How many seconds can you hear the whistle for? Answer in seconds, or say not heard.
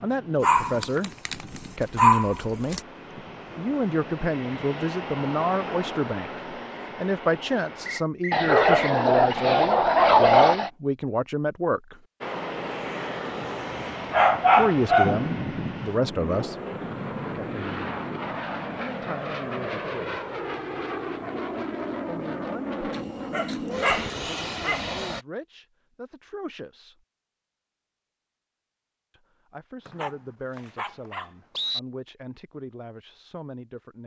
3 s.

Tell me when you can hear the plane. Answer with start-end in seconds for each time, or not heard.
0.0-8.1, 12.2-25.2.